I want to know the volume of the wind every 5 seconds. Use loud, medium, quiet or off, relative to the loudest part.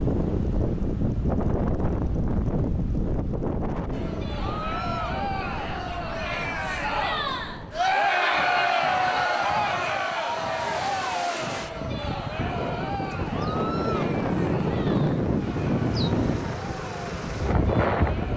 loud, quiet, loud, loud.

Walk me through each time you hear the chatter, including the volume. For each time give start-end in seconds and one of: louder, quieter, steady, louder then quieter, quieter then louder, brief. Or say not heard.
3.9-18.3 louder then quieter.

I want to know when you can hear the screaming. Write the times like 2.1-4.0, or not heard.
4.5-5.2, 13.3-14.1.